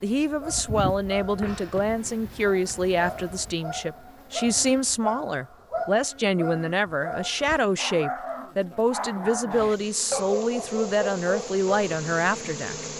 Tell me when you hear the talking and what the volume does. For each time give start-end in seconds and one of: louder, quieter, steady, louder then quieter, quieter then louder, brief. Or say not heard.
0.0-12.8 steady.